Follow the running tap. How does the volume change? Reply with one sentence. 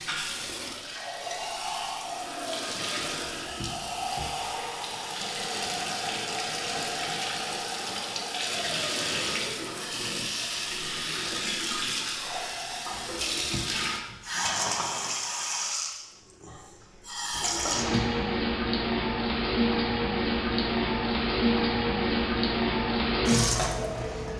The loudness of the running tap goes up.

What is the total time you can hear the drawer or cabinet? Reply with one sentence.
The drawer or cabinet can be heard for 3 seconds in total.